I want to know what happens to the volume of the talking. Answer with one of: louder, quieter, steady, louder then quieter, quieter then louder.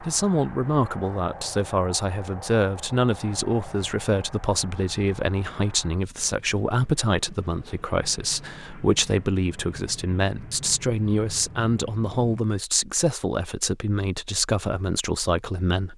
steady.